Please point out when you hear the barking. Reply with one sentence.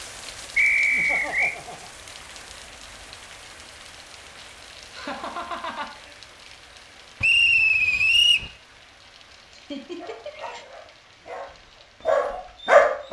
The barking can be heard from 9.9 to 13.0 s.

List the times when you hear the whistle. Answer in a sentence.
You can hear the whistle from 0.6 to 1.6 s and from 7.2 to 8.5 s.